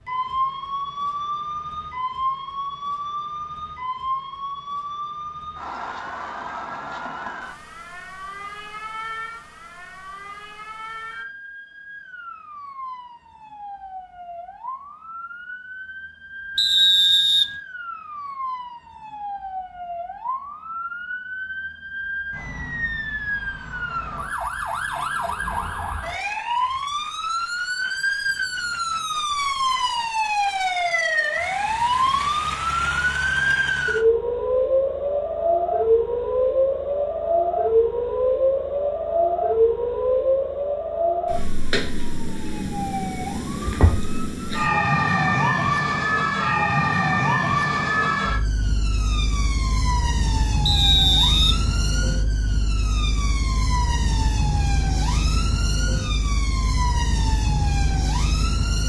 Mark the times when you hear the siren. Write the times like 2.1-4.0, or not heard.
0.0-58.8.